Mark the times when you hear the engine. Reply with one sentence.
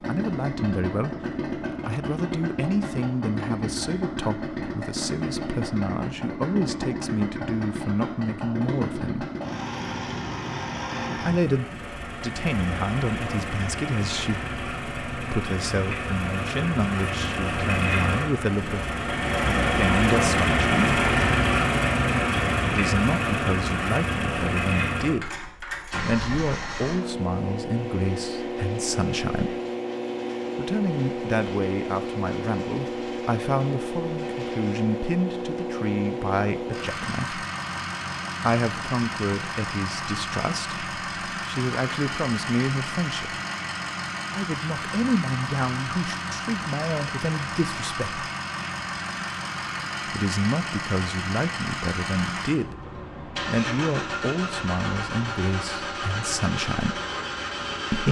You can hear the engine from 0.0 to 58.0 s.